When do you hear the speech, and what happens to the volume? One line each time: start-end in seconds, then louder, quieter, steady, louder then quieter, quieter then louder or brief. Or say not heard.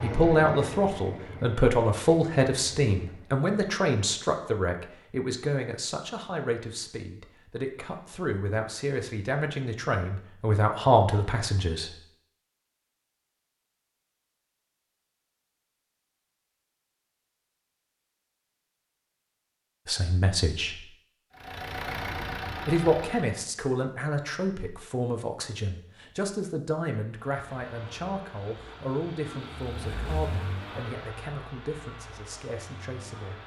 0.0-11.9 quieter then louder
19.9-20.8 brief
22.6-33.4 quieter.